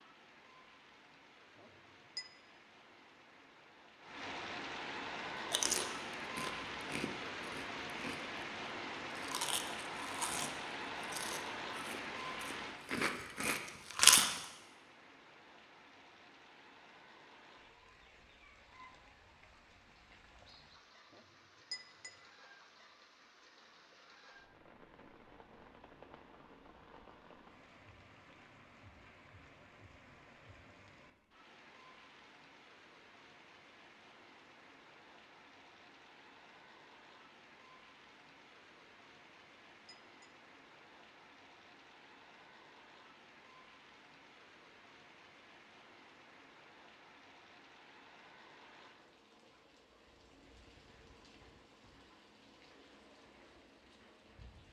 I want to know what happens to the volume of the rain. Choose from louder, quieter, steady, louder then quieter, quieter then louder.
quieter.